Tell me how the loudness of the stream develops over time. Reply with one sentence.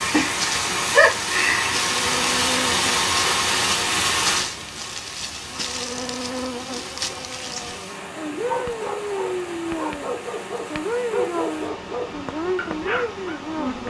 The volume of the stream goes down.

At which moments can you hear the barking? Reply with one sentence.
You can hear the barking from 8.4 to 13.4 s.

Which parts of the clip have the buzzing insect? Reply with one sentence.
You can hear the buzzing insect from 0.2 to 13.8 s.